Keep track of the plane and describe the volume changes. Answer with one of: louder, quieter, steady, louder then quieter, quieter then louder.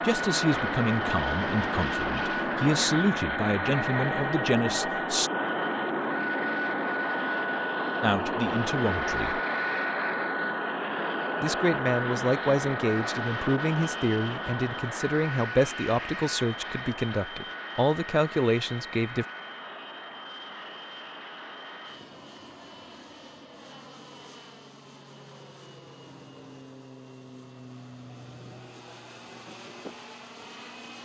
quieter.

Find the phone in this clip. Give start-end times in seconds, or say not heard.
3.9-5.1.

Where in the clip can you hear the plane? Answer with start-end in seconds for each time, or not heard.
0.0-31.0.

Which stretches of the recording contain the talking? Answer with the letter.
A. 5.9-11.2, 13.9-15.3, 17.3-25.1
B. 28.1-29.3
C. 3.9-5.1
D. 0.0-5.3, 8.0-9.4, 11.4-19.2
D.